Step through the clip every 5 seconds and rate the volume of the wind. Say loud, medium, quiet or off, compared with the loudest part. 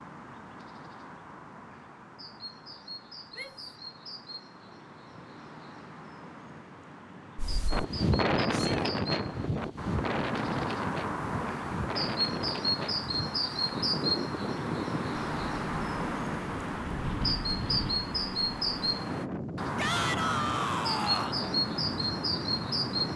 off, loud, medium, medium, medium.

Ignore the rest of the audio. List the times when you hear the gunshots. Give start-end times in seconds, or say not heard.
not heard.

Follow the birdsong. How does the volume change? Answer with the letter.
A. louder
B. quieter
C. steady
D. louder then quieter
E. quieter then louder
A.